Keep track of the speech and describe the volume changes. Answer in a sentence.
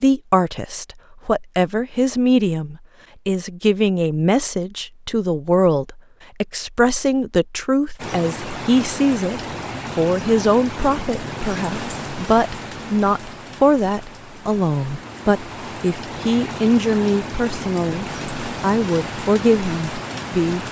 The loudness of the speech stays about the same.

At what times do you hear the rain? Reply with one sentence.
The rain can be heard from 8.0 to 20.6 s.